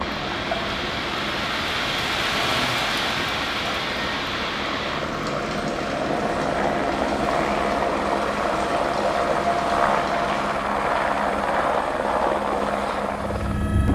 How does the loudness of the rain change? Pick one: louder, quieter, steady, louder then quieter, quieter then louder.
quieter.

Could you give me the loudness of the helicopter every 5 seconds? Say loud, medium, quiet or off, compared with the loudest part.
medium, loud, loud.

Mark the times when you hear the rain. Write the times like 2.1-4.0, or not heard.
0.0-10.6.